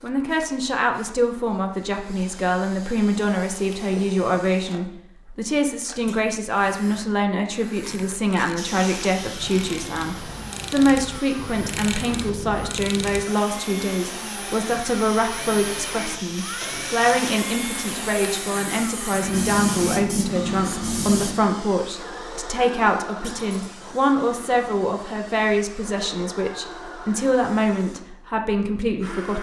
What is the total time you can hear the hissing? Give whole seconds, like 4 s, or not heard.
13 s.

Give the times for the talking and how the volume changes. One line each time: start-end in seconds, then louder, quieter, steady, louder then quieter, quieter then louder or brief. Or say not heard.
0.0-29.3 steady.